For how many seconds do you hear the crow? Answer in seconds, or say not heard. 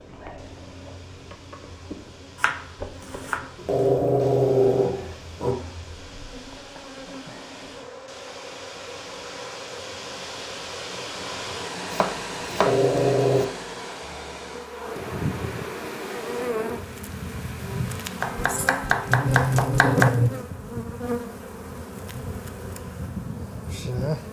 not heard.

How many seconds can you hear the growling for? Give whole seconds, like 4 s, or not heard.
5 s.